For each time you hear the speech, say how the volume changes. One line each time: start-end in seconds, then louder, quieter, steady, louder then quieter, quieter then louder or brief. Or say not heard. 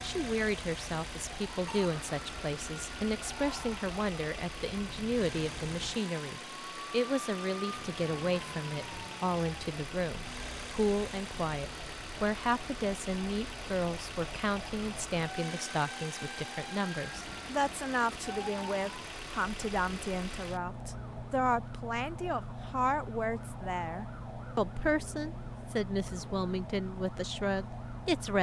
0.0-28.3 steady.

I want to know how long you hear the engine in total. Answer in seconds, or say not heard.
28 s.